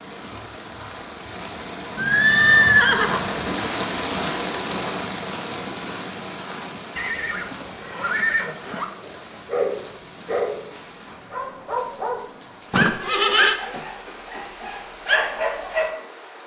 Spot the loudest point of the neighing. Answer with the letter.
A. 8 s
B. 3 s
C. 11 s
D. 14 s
B.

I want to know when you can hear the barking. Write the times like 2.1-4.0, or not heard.
9.0-15.9.